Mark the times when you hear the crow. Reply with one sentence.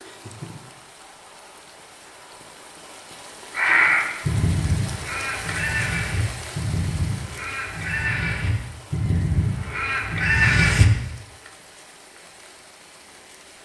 The crow can be heard from 3.5 to 10.8 s.